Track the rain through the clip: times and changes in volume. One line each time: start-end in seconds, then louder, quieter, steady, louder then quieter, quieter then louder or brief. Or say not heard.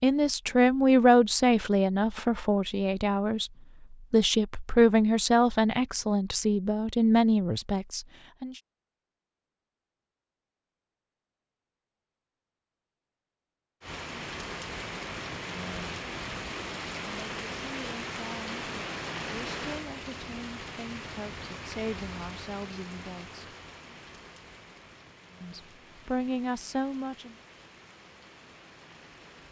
13.8-29.4 quieter.